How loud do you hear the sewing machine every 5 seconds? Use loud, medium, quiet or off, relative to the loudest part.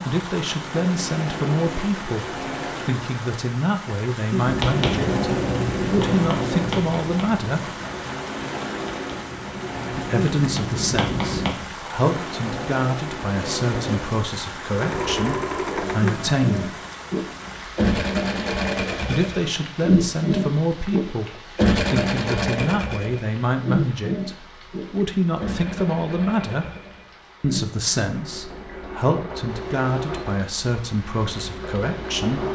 medium, medium, medium, loud, loud, medium, medium.